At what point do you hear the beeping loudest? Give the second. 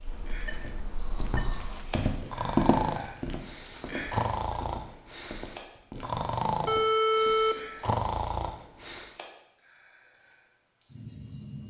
7 s.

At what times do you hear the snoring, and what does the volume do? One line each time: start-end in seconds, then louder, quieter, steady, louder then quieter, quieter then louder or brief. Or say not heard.
0.0-9.2 louder.